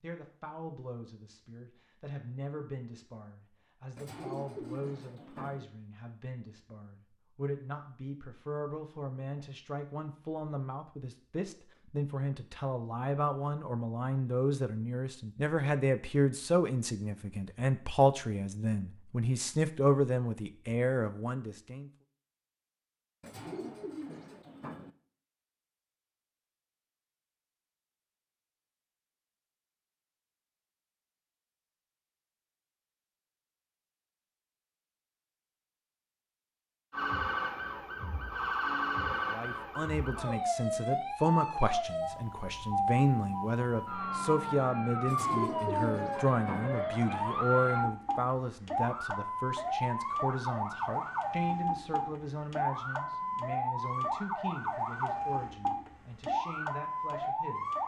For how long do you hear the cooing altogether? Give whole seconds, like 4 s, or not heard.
5 s.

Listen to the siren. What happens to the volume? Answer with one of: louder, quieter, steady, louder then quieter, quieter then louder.
steady.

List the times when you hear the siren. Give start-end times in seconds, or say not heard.
36.9-57.8.